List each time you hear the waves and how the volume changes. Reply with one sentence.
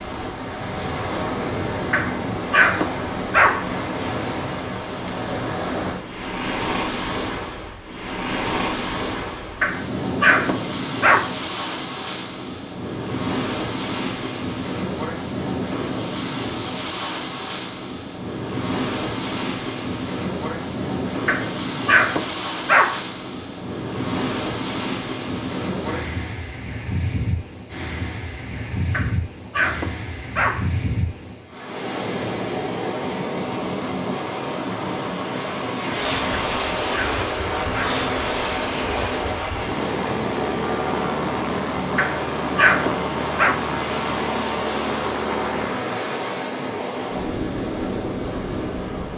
You can hear the waves from 0.0 to 49.1 s, at a steady volume.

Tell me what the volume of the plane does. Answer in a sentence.
The volume of the plane stays about the same.